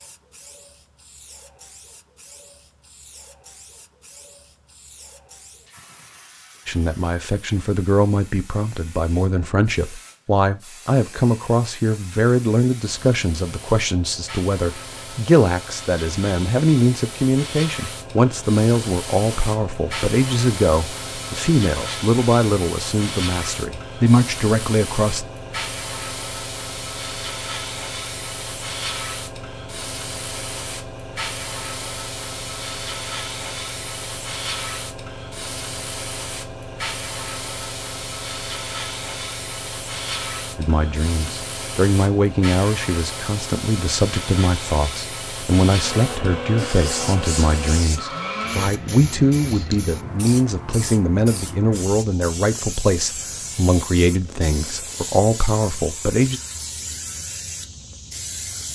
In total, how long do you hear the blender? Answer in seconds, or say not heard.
3 s.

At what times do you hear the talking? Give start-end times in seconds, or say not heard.
6.7-25.2, 40.5-56.4.